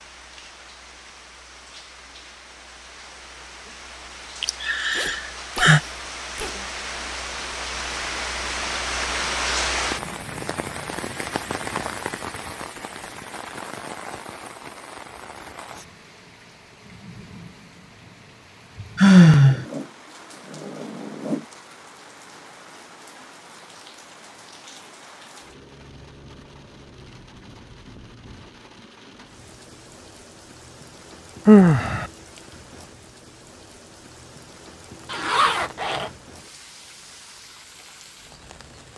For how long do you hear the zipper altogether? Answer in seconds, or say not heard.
5 s.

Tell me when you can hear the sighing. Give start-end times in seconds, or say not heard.
4.4-5.8, 18.9-19.6, 31.4-32.0.